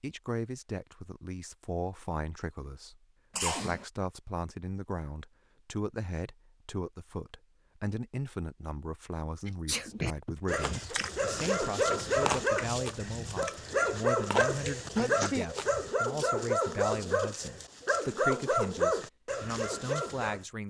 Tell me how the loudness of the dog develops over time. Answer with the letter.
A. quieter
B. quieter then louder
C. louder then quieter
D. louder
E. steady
E.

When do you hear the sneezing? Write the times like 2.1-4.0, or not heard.
3.4-3.9, 9.4-10.3, 14.9-15.4.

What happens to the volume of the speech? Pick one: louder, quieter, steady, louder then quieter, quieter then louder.
steady.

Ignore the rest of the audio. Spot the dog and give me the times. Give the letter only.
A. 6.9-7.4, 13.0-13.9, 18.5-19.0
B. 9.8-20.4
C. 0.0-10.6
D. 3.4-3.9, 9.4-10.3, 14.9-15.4
B.